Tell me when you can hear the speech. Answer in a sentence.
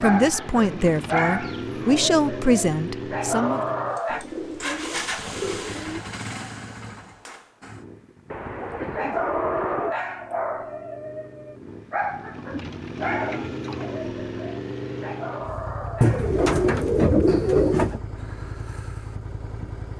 You can hear the speech from 0.0 to 3.6 s.